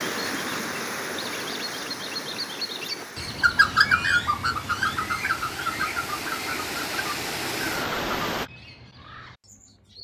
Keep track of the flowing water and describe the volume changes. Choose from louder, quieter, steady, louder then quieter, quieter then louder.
quieter then louder.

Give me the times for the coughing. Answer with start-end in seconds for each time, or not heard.
not heard.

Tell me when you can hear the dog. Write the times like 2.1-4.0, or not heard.
not heard.